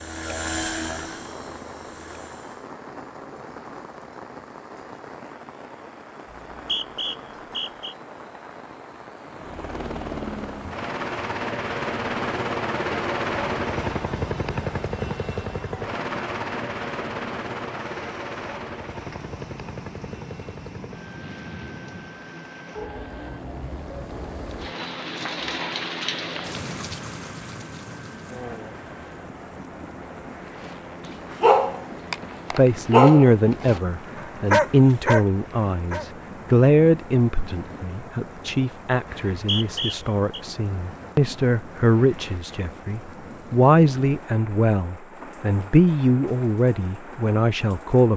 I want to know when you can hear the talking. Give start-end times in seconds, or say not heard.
32.5-48.1.